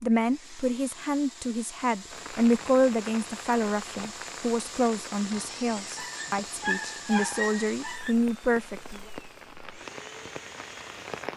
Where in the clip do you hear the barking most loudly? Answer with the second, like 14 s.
7 s.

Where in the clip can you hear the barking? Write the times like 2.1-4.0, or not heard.
5.8-8.2.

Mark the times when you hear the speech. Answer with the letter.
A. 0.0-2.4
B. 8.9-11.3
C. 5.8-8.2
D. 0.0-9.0
D.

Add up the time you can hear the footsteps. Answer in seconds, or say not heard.
not heard.